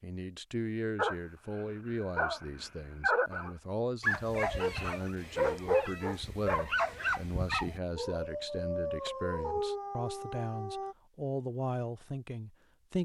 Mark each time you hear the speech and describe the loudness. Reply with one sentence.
The speech can be heard from 0.0 to 12.9 s, at a steady volume.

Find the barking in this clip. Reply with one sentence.
The barking can be heard from 0.9 to 10.9 s.